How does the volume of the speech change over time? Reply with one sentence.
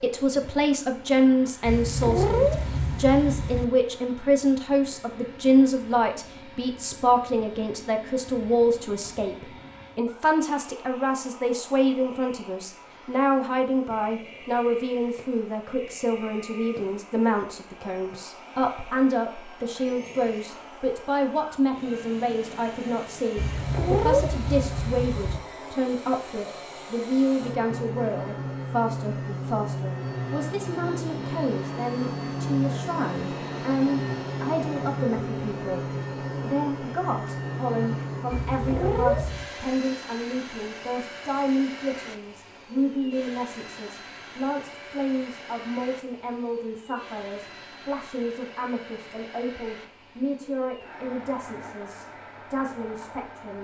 The volume of the speech goes down.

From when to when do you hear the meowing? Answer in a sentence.
You can hear the meowing from 1.6 to 3.6 s, from 23.4 to 25.4 s and from 38.3 to 39.5 s.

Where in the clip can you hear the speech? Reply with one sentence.
The speech can be heard from 0.0 to 53.6 s.